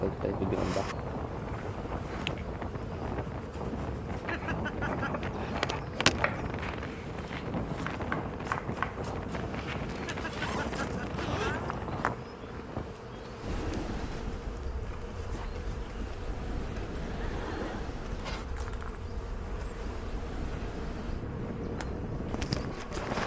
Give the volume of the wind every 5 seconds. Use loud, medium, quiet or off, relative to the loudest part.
loud, loud, loud, medium, loud.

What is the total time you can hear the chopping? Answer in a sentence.
The chopping can be heard for 6 seconds in total.